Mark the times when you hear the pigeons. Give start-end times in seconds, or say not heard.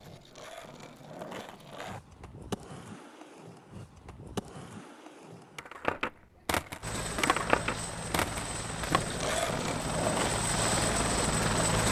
not heard.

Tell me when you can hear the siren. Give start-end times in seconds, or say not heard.
not heard.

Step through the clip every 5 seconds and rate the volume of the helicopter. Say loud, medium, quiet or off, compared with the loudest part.
off, medium, loud.